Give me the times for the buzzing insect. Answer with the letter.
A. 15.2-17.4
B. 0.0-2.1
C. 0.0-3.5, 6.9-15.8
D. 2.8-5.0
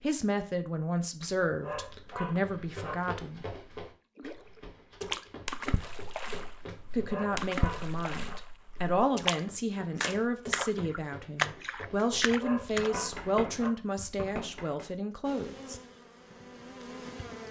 A.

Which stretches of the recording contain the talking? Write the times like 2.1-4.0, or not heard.
0.0-3.5, 6.9-15.8.